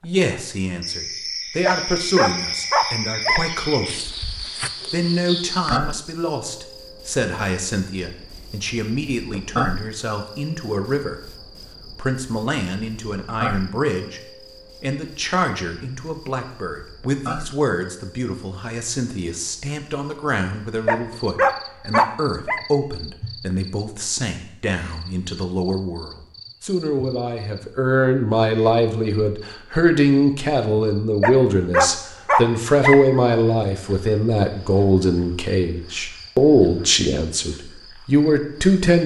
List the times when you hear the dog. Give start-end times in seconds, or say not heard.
1.6-3.5, 20.9-22.6, 31.2-33.2.